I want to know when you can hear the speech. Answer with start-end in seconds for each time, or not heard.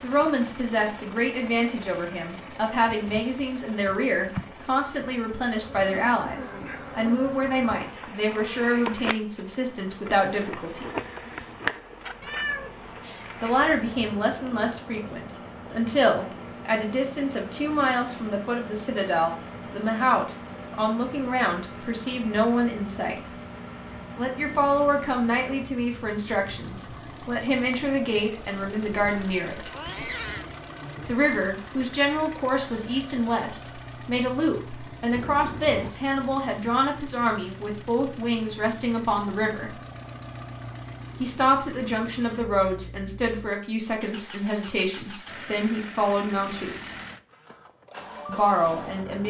0.0-10.9, 13.4-23.3, 24.1-29.7, 31.1-39.7, 41.2-47.0, 48.2-49.2.